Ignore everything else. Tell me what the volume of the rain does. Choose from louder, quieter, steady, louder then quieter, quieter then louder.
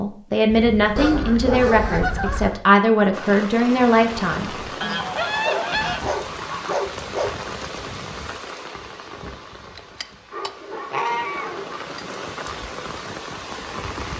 quieter then louder.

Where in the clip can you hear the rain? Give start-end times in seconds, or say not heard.
3.1-14.1.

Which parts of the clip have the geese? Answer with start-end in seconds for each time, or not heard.
0.9-2.6, 4.8-6.8, 9.6-12.1.